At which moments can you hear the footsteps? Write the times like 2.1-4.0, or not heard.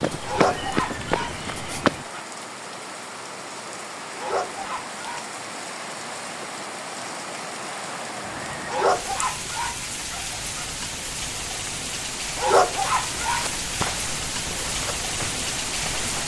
0.0-2.0, 13.2-16.2.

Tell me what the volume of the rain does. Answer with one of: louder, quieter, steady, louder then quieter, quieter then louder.
louder.